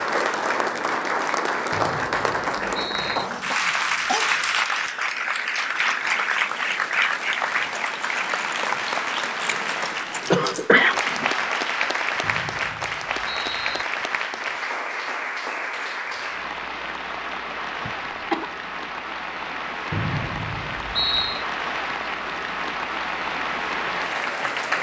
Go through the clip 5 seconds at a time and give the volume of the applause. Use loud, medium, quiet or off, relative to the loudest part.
loud, loud, loud, medium, loud.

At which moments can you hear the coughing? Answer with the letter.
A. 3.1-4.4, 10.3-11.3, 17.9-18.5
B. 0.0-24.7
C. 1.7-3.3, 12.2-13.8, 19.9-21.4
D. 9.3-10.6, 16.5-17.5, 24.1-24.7
A.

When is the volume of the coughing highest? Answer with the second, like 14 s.
11 s.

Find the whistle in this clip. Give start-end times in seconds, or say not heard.
1.7-3.3, 12.2-13.8, 19.9-21.4.